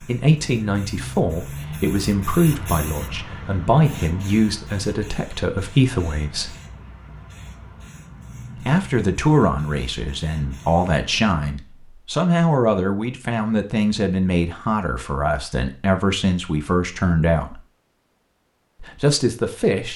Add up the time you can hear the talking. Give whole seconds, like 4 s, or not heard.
17 s.